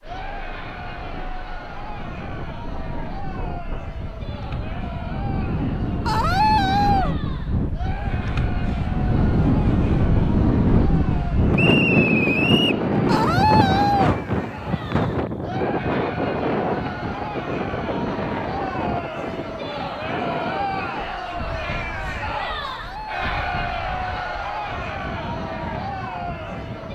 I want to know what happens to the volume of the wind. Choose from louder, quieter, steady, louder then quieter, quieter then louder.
louder then quieter.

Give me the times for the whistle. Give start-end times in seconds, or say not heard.
11.6-12.8.